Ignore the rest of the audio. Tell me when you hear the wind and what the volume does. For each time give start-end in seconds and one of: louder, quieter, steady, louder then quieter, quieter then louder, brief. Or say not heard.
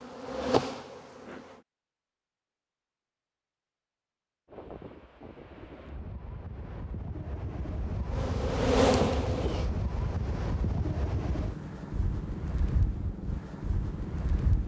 4.5-14.6 louder.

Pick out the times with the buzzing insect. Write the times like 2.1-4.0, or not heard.
0.0-1.6, 8.1-9.7.